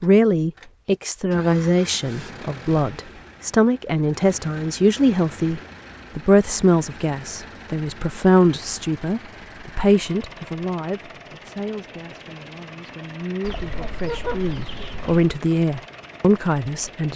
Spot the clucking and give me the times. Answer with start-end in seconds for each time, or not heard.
13.4-15.3.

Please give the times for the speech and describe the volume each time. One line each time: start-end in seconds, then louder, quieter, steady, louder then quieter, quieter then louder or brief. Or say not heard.
0.0-17.1 quieter then louder.